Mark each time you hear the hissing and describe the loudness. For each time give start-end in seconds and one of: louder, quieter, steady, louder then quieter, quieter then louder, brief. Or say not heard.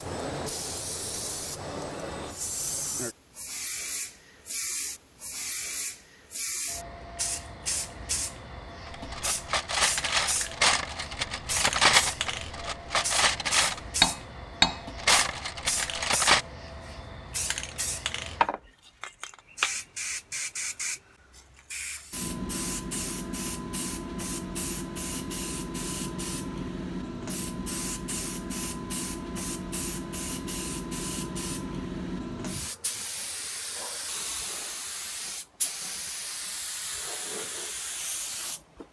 0.0-38.8 steady.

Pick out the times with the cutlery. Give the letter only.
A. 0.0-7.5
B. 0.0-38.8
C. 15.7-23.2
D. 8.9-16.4
D.